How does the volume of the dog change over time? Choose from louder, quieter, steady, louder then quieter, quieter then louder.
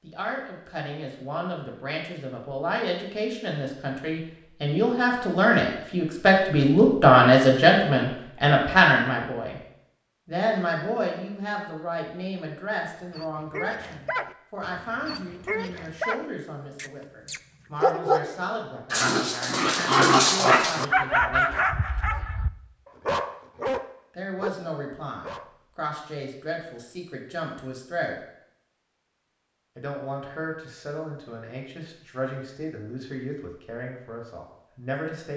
louder then quieter.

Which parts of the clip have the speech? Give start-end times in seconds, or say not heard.
0.0-9.6, 10.2-21.8, 24.1-28.1, 29.8-35.3.